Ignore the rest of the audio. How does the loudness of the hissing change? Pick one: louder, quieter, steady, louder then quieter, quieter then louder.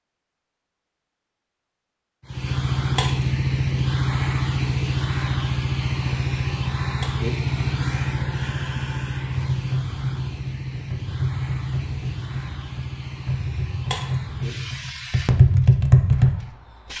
quieter.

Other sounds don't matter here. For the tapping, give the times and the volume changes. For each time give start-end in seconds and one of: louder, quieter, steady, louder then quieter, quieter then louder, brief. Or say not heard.
9.5-16.4 louder.